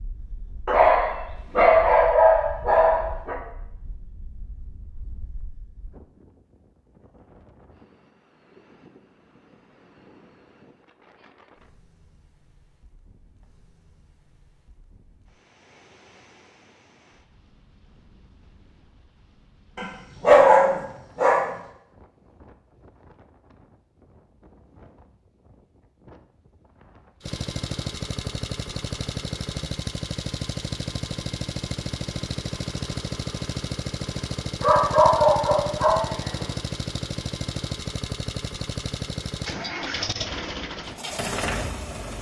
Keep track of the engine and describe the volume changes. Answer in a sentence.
The loudness of the engine stays about the same.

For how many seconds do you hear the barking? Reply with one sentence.
You can hear the barking for 6 seconds altogether.